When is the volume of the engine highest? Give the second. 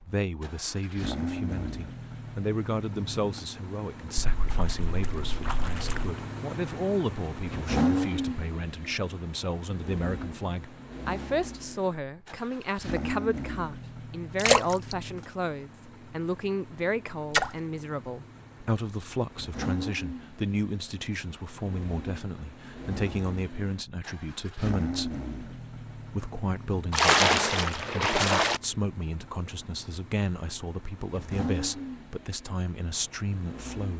8 s.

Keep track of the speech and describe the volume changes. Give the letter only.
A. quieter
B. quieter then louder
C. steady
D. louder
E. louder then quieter
C.